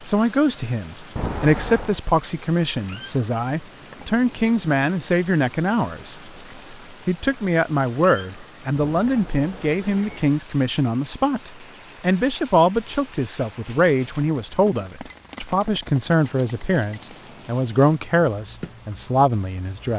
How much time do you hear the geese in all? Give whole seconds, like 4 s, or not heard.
not heard.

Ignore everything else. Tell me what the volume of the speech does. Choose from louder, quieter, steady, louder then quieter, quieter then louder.
steady.